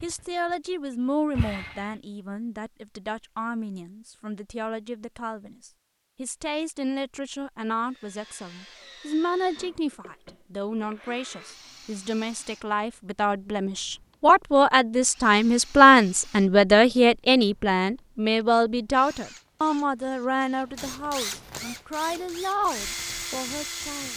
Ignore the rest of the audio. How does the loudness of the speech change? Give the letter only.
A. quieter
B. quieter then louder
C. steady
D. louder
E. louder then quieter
E.